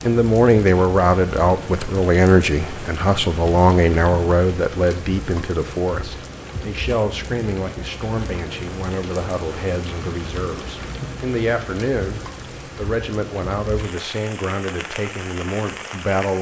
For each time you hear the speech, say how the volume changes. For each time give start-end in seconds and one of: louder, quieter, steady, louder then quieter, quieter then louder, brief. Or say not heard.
0.0-16.3 quieter.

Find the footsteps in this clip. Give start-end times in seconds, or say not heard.
not heard.